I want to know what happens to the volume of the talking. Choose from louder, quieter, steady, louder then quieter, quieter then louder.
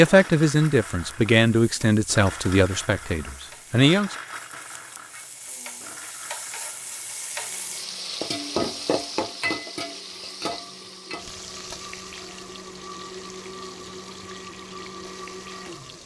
quieter.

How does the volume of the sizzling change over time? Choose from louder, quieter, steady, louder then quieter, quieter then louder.
louder then quieter.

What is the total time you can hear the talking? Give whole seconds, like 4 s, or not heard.
4 s.